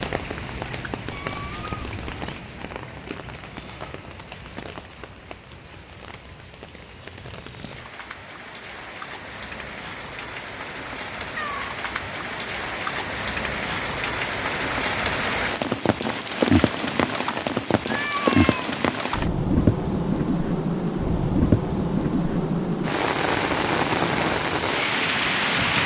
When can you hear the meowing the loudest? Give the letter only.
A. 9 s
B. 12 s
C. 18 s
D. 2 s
C.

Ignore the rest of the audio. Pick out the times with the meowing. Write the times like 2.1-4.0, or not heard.
1.1-2.5, 11.2-11.7, 17.9-18.7.